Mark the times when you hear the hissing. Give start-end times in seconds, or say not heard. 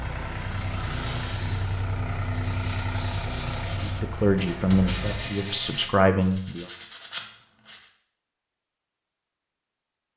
0.0-2.5.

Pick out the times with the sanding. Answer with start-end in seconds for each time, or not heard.
2.3-7.9.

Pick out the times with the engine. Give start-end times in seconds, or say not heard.
0.0-5.2.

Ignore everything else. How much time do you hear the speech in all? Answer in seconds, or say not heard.
3 s.